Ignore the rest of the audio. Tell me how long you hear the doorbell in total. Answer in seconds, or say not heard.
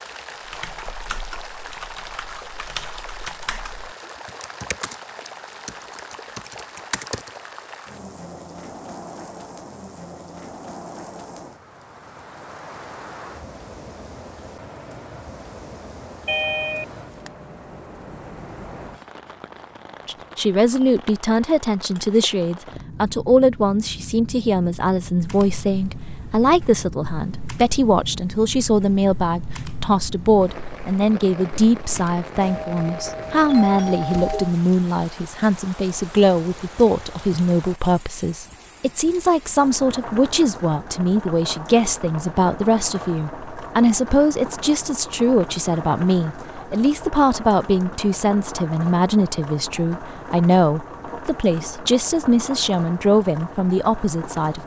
3 s.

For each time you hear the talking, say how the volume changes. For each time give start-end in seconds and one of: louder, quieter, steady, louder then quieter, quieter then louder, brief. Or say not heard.
20.1-54.6 steady.